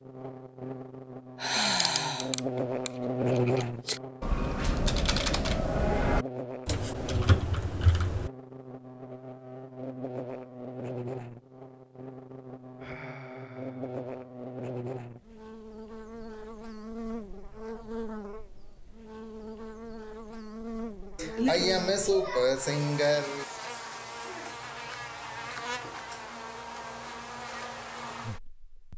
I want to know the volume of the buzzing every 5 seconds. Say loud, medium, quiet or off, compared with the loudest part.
loud, medium, medium, medium, medium, medium.